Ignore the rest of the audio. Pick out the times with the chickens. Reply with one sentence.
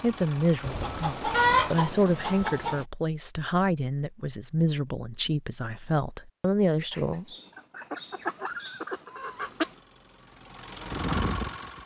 The chickens can be heard from 0.6 to 2.9 s and from 6.9 to 9.8 s.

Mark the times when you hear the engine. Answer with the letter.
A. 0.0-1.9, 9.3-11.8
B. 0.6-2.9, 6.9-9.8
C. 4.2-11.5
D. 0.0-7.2
A.